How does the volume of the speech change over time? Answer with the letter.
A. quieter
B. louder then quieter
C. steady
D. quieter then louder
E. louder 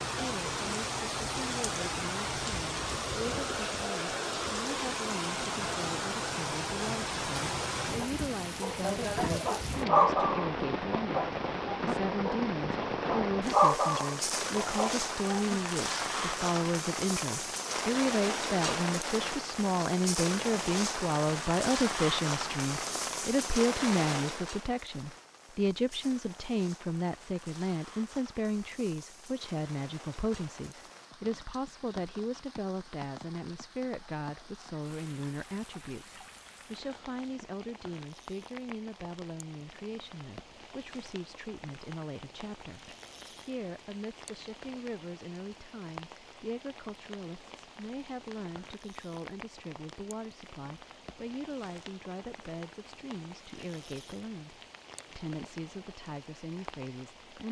B.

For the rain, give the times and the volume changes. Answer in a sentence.
The rain can be heard from 0.0 to 57.4 s, getting quieter.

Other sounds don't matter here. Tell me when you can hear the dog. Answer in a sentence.
You can hear the dog from 8.6 to 15.6 s.